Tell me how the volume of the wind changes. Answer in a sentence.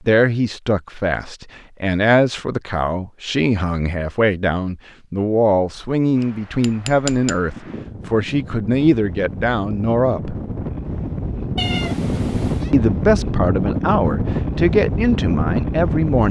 The volume of the wind goes up.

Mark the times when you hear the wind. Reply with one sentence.
You can hear the wind from 6.2 to 16.2 s.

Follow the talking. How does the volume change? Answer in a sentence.
The loudness of the talking stays about the same.